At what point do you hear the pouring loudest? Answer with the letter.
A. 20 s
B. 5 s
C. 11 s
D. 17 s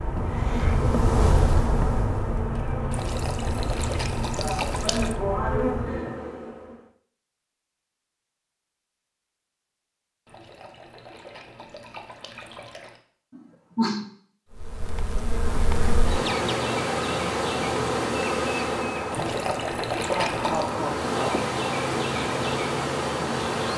A.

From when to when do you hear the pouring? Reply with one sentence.
The pouring can be heard from 2.9 to 5.2 s, from 10.2 to 13.0 s and from 19.1 to 20.8 s.